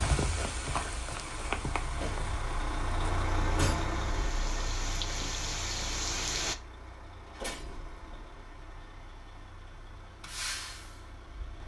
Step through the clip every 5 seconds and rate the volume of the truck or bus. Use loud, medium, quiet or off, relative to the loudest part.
loud, medium, medium.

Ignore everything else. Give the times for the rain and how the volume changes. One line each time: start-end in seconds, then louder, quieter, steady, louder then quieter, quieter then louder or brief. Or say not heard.
0.0-6.5 quieter then louder.